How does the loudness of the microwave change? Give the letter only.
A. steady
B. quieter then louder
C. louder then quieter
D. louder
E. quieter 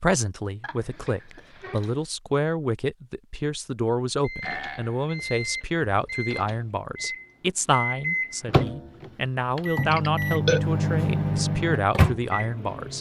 D.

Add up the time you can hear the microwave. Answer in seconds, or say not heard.
9 s.